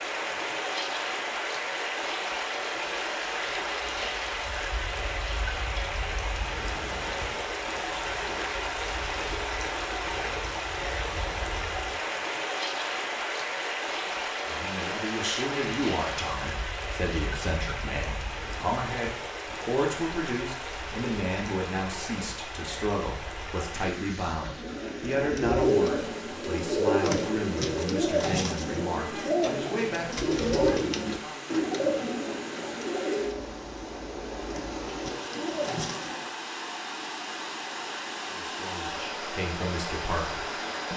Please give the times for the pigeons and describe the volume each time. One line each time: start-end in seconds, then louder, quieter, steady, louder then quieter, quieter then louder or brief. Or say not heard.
24.4-36.3 quieter.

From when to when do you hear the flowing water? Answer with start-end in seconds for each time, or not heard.
0.0-40.9.